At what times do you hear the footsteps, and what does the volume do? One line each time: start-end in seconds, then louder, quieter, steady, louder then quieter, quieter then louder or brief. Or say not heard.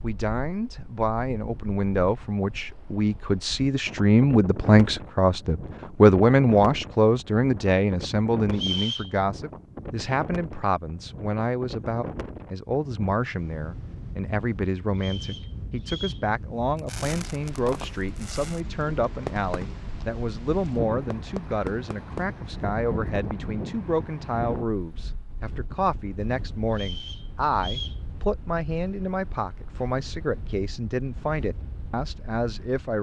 not heard.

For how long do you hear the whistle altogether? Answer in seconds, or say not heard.
3 s.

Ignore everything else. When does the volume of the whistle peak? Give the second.
9 s.